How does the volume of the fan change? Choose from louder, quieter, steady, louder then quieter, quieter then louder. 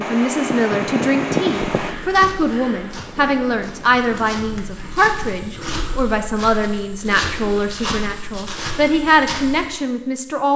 quieter.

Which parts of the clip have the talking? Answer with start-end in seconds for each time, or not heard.
0.0-10.5.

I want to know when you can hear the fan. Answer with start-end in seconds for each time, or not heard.
0.0-6.0.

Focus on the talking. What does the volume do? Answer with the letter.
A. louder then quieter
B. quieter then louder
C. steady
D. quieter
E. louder
C.